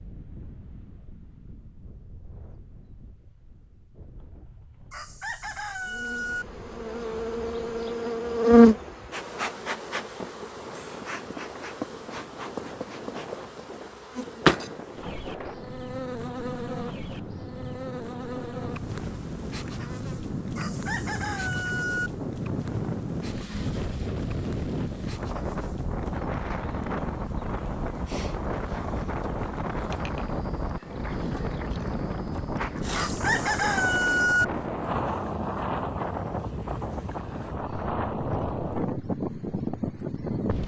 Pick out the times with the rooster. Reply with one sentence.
You can hear the rooster from 4.9 to 6.5 s, from 20.6 to 22.1 s and from 32.9 to 34.5 s.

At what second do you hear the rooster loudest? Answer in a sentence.
The volume of the rooster peaks at 34 seconds.